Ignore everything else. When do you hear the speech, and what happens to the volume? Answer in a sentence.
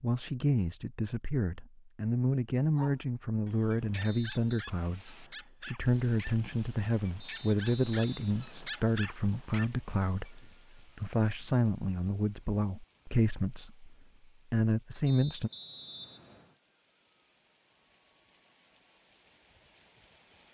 The speech can be heard from 0.0 to 15.5 s, at a steady volume.